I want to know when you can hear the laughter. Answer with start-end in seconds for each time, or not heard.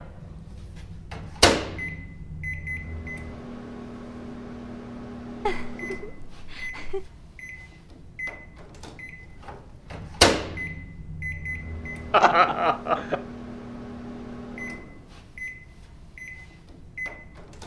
5.5-7.1, 12.1-13.2.